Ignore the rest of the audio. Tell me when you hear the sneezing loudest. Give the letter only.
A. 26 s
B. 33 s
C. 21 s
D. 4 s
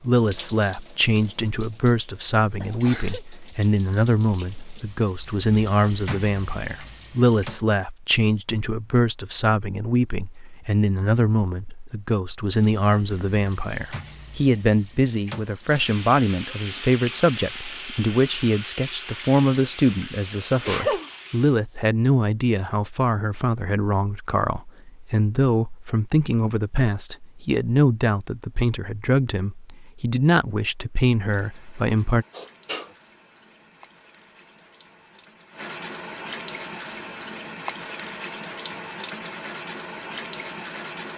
C.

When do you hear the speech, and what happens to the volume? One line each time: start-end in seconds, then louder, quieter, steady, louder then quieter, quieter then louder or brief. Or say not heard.
0.0-32.2 steady.